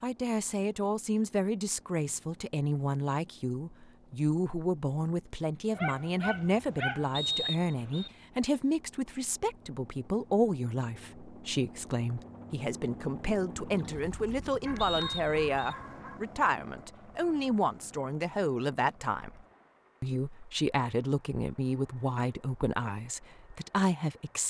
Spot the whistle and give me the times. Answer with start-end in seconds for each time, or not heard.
7.2-8.1, 14.8-15.8.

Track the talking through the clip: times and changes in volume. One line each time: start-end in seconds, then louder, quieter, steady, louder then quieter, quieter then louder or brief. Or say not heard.
0.0-24.4 steady.